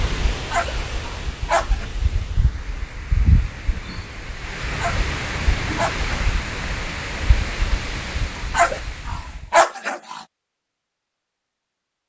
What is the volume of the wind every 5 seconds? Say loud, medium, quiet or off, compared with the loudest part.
loud, loud, off.